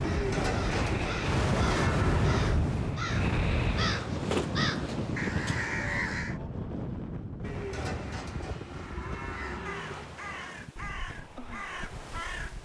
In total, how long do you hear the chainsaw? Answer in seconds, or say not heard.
not heard.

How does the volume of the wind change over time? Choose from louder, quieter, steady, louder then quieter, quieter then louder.
quieter.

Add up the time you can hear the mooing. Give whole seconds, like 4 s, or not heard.
5 s.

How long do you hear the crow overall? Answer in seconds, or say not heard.
10 s.